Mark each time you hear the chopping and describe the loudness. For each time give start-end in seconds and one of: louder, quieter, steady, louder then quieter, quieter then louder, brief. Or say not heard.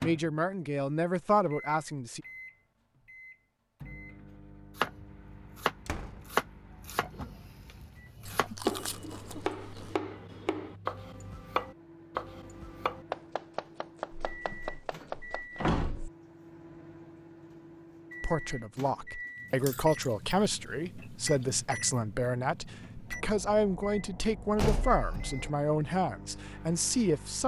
4.8-15.6 quieter.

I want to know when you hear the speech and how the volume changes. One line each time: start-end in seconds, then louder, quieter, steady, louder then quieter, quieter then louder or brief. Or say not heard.
0.0-2.2 brief
18.2-27.4 steady.